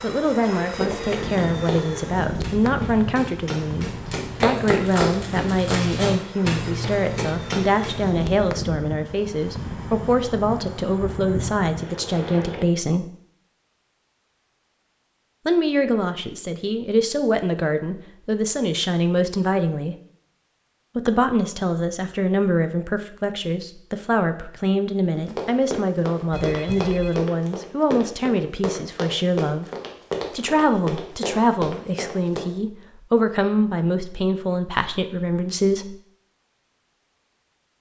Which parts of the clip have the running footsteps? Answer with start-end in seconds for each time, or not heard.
0.8-8.1, 25.1-32.4.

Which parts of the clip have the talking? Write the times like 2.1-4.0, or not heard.
0.0-13.1, 15.4-19.9, 20.9-29.7, 30.3-36.0.